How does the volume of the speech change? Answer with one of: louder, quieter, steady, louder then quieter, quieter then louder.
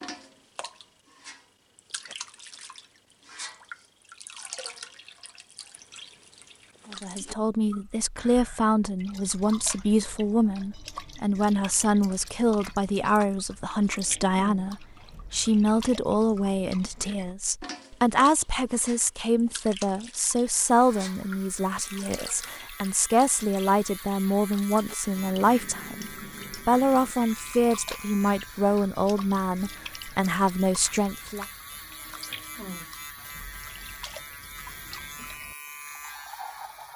steady.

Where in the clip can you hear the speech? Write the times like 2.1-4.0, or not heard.
6.9-31.4.